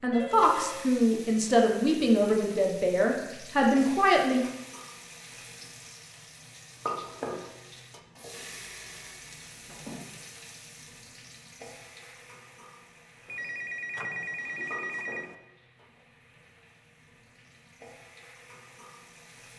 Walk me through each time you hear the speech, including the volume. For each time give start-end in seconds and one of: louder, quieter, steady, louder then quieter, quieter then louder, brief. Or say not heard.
0.0-4.4 steady.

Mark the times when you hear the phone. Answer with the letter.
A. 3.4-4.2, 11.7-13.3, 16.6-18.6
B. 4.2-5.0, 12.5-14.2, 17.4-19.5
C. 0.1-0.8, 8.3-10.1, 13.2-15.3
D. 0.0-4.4
C.